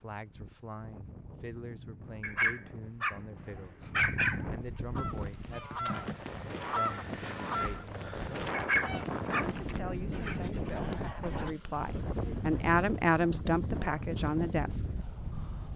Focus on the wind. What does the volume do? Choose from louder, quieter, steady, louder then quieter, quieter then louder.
louder.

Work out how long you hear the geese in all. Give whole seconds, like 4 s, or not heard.
7 s.